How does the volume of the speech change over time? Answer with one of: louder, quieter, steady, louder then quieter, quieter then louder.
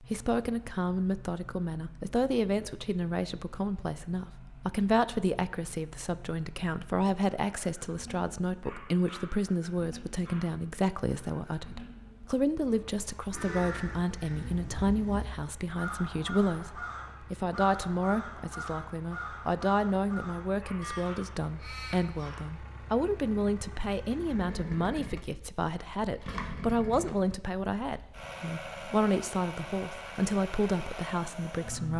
steady.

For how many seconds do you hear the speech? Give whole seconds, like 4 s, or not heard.
32 s.